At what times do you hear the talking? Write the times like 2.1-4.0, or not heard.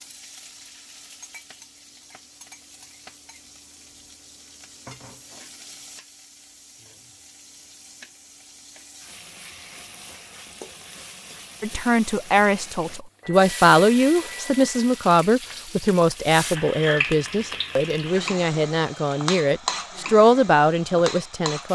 11.6-21.7.